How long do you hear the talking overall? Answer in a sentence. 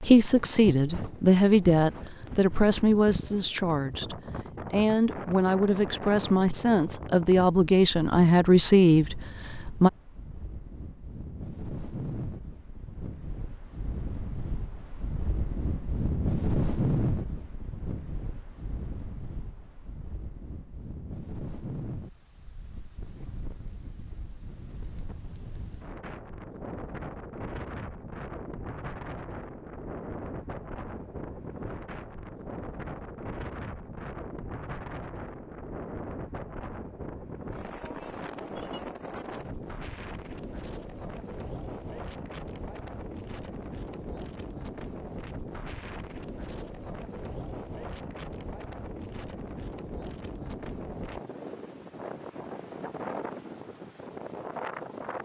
The talking can be heard for 10 seconds in total.